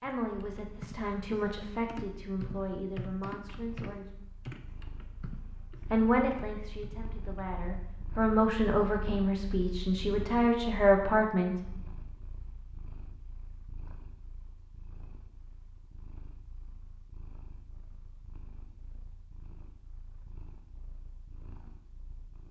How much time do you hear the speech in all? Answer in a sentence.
You can hear the speech for 10 seconds altogether.